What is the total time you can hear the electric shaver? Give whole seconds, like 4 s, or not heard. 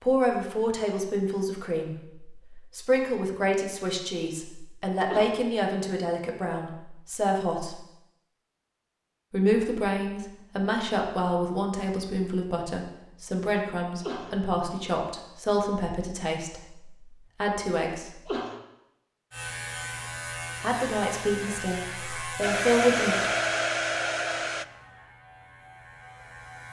7 s.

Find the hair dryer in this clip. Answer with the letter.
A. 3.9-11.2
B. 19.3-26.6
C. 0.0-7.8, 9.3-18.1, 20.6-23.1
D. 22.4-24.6
D.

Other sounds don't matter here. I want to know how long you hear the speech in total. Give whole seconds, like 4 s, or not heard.
19 s.